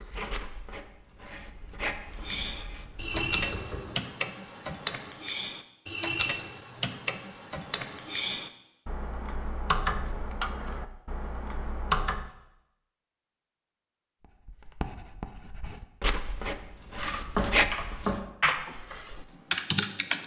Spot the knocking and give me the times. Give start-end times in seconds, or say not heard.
3.1-4.0, 17.4-18.2.